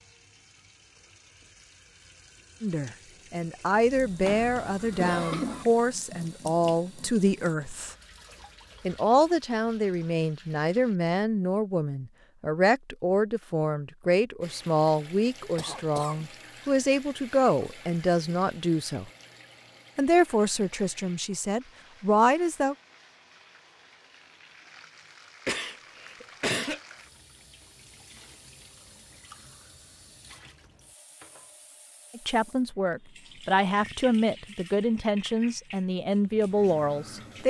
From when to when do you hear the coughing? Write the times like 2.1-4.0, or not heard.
4.2-5.7, 15.6-16.2, 25.4-26.8.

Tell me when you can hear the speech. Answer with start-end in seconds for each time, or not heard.
2.6-8.0, 8.8-19.1, 19.9-22.8, 32.1-37.4.